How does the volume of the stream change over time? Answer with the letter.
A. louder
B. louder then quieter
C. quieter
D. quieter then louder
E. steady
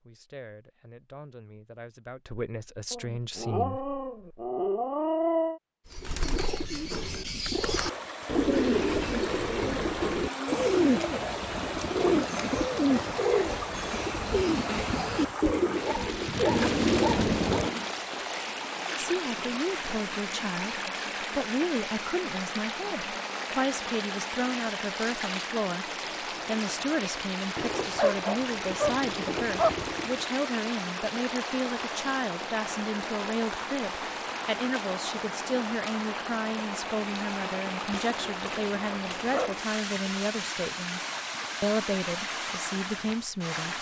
E.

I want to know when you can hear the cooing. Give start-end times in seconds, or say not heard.
5.9-17.9.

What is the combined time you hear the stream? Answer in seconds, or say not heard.
36 s.